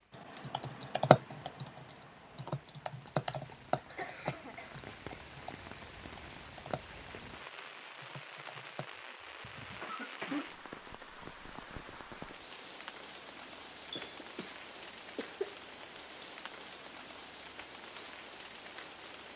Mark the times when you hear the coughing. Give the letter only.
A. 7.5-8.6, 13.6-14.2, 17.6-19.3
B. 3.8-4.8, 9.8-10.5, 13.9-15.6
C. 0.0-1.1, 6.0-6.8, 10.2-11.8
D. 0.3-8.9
B.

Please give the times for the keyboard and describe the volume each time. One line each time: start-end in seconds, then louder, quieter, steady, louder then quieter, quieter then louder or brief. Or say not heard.
0.3-8.9 quieter.